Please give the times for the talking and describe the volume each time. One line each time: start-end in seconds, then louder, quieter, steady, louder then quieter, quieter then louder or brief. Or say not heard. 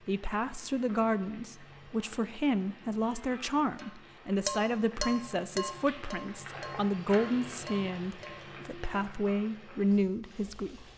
0.1-10.8 steady.